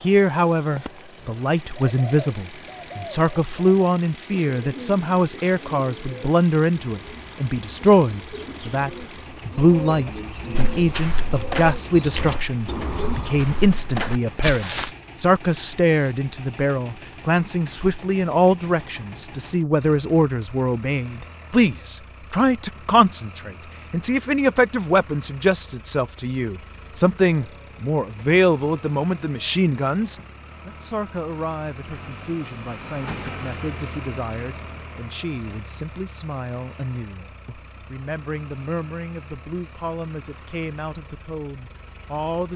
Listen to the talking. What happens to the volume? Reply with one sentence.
The volume of the talking goes down.